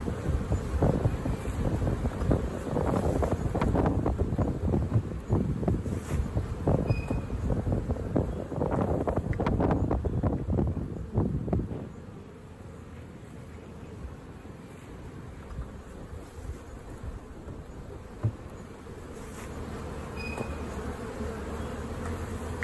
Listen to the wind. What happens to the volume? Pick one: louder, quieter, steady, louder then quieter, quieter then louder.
quieter.